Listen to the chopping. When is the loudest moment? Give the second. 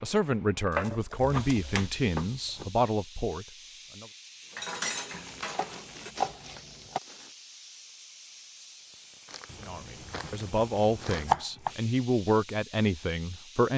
11 s.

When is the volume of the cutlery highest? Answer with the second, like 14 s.
5 s.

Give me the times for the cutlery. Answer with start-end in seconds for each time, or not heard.
4.5-6.6.